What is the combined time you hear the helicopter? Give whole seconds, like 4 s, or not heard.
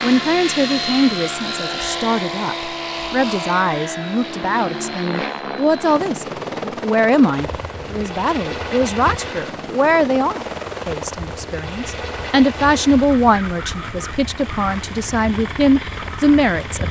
17 s.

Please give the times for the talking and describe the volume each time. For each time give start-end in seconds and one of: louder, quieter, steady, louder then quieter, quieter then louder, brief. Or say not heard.
0.0-16.8 steady.